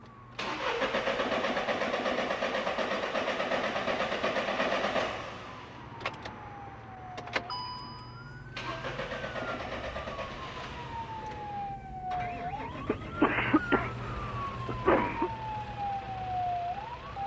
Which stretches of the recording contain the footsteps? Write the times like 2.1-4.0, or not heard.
not heard.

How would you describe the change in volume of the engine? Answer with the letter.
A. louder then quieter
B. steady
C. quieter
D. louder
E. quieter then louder
C.